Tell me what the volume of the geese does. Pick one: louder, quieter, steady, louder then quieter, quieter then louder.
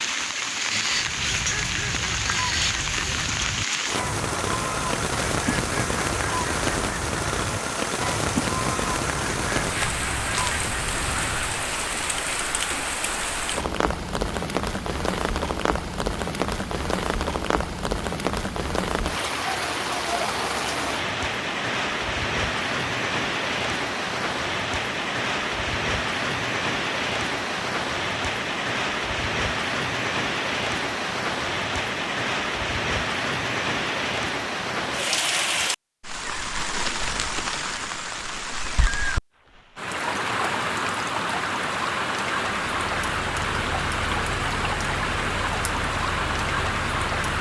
steady.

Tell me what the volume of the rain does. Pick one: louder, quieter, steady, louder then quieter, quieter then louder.
steady.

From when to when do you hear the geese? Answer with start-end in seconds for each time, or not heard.
0.8-11.7.